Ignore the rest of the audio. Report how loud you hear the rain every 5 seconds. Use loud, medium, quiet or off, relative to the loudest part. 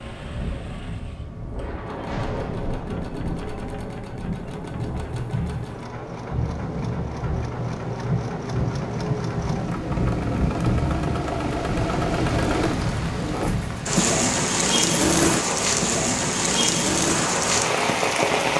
medium, medium, loud, loud.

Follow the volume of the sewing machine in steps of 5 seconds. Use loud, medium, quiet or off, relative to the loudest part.
quiet, medium, loud, loud.